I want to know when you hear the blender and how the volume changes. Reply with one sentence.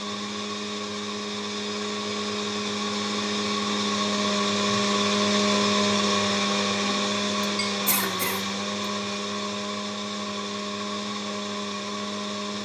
The blender can be heard from 0.0 to 12.6 s, getting louder then quieter.